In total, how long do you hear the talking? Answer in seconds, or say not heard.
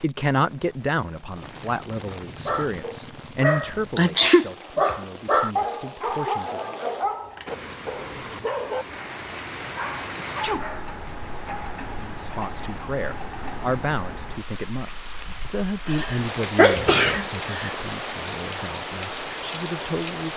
15 s.